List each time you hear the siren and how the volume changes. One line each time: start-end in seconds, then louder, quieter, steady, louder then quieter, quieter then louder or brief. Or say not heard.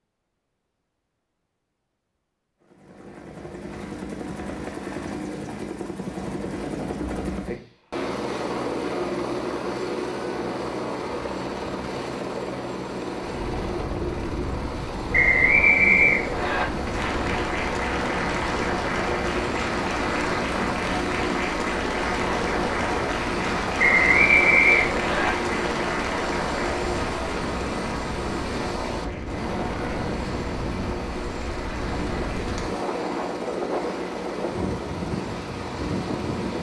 not heard.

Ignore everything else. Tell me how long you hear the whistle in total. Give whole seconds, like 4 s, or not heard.
3 s.